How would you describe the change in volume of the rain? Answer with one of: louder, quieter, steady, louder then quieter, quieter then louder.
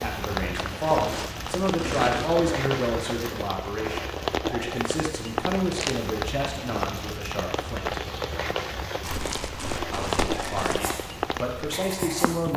steady.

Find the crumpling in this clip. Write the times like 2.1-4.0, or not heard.
0.5-2.4, 5.5-6.1, 9.0-10.8.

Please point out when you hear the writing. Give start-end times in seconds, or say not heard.
10.8-12.4.